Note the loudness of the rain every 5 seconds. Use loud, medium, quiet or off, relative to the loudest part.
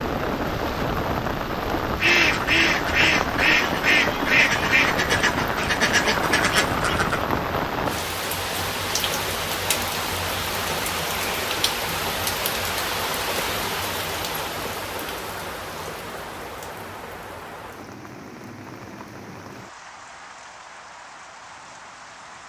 loud, loud, loud, medium, quiet.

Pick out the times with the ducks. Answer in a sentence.
You can hear the ducks from 2.0 to 7.2 s.